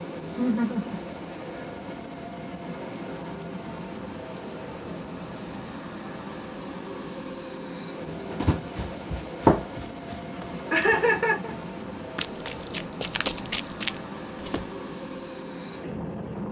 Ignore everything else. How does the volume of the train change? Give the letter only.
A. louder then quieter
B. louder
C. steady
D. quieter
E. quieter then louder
C.